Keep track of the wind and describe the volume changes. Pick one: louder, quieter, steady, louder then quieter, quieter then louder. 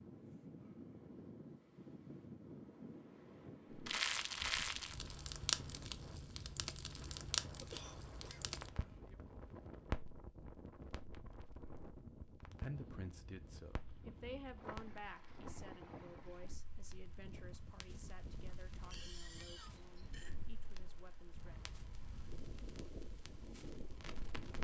steady.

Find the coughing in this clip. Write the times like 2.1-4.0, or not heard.
7.6-8.6, 18.9-20.4.